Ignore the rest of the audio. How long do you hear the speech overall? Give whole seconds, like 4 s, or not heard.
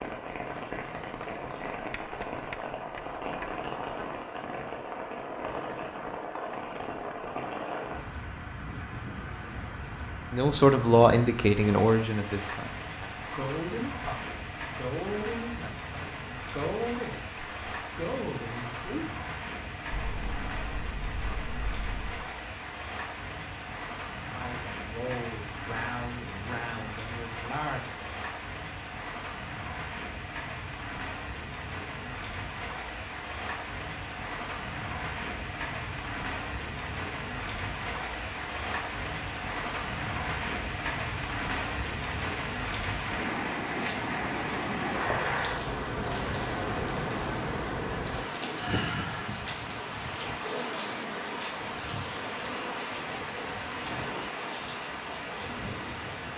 13 s.